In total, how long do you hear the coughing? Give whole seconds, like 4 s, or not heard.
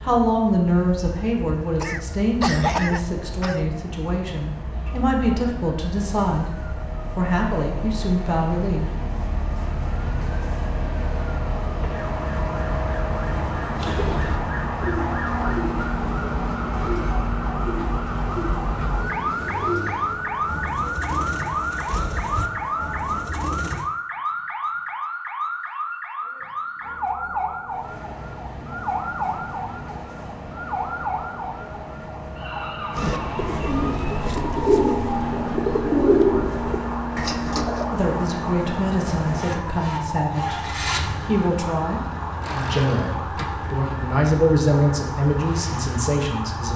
2 s.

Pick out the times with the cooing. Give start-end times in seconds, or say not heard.
13.8-23.9, 33.0-37.9.